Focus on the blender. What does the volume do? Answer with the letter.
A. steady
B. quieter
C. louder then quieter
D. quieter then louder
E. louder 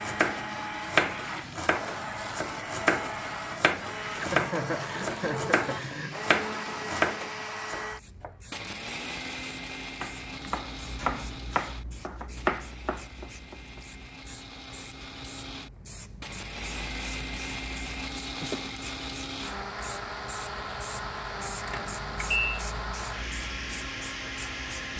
D.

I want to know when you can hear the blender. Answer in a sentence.
The blender can be heard from 0.0 to 24.9 s.